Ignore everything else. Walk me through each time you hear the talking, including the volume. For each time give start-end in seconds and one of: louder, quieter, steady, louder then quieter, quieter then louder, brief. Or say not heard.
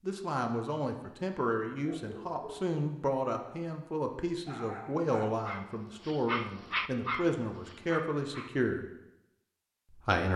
0.0-8.8 steady
9.9-10.3 brief.